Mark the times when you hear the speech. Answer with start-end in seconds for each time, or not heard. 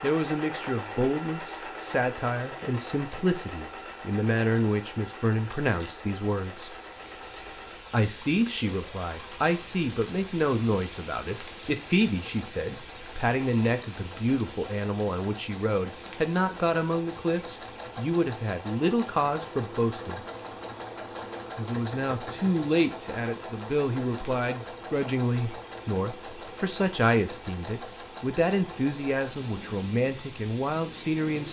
0.0-6.8, 7.9-20.2, 21.6-31.4.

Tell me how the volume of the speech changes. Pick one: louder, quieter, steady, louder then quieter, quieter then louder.
steady.